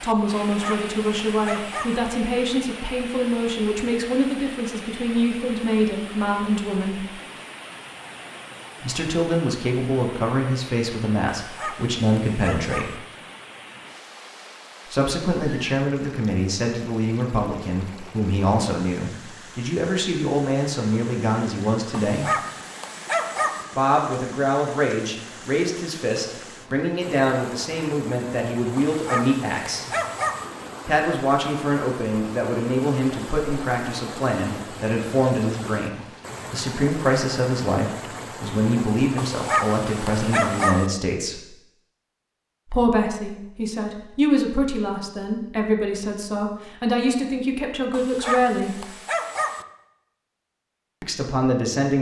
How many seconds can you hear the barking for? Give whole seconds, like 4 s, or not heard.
10 s.